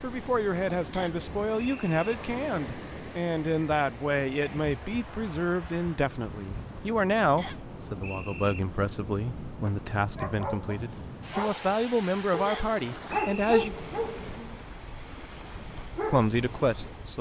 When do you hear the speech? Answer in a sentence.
You can hear the speech from 0.0 to 13.8 s and from 16.1 to 17.1 s.